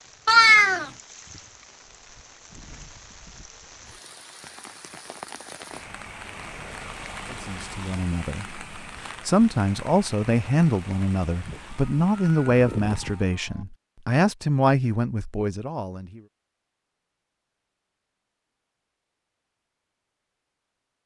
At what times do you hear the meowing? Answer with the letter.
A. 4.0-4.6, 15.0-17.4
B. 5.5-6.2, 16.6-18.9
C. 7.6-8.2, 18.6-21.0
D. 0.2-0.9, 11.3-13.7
D.